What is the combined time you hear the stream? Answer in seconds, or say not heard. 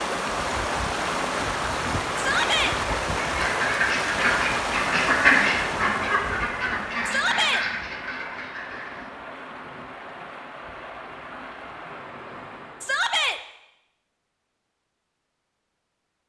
13 s.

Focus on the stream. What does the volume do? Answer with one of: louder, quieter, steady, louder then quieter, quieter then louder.
quieter.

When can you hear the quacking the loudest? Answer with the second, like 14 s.
5 s.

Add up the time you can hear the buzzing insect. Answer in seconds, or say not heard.
not heard.